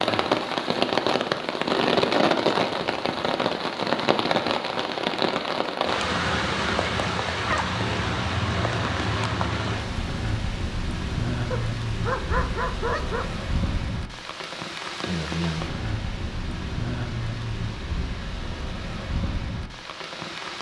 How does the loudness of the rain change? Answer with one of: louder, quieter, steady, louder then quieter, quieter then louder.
quieter.